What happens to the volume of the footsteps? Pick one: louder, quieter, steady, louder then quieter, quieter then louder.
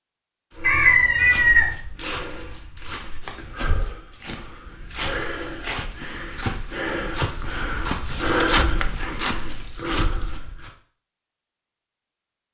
louder.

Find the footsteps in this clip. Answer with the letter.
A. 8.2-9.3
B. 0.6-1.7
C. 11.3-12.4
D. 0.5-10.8
D.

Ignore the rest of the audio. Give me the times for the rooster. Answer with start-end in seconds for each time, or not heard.
0.6-1.7.